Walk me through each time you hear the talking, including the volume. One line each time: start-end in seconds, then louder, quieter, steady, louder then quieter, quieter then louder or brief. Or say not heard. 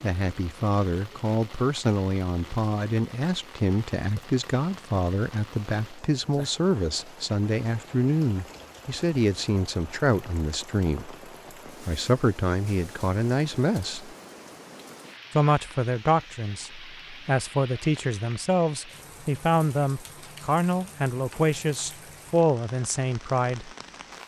0.0-14.2 steady
15.3-23.7 steady.